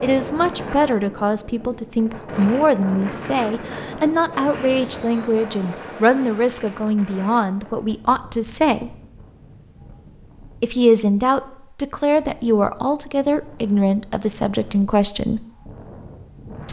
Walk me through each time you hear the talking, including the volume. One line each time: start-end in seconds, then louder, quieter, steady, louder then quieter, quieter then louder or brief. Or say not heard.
0.0-8.9 steady
10.6-15.4 steady.